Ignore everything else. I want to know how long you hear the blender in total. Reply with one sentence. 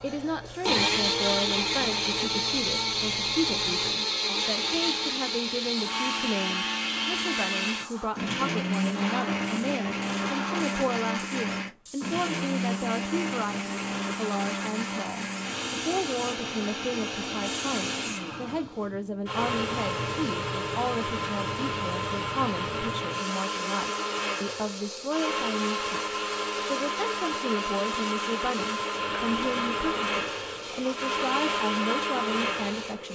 You can hear the blender for 33 seconds altogether.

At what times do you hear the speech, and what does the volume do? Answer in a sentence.
The speech can be heard from 0.0 to 33.1 s, at a steady volume.